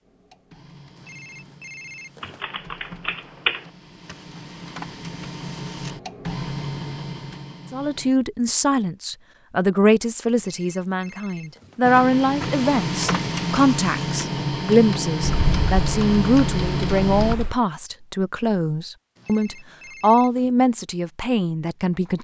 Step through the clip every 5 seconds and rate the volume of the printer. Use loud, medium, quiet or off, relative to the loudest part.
quiet, medium, loud, loud, off.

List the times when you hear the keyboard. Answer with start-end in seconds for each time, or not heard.
2.2-3.6, 15.2-17.6.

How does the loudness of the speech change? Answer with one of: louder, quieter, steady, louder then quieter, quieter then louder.
steady.